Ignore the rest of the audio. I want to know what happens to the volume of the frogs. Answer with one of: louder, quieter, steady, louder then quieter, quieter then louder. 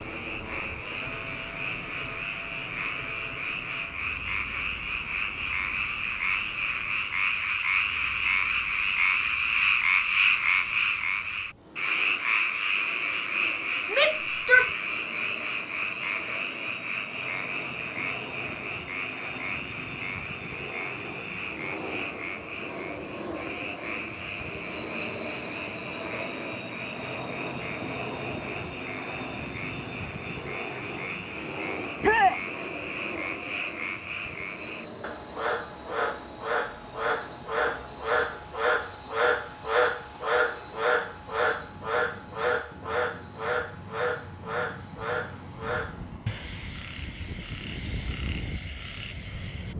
quieter then louder.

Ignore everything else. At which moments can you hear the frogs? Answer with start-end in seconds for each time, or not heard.
0.0-49.7.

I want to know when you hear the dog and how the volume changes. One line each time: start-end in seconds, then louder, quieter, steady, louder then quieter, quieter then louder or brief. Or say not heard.
not heard.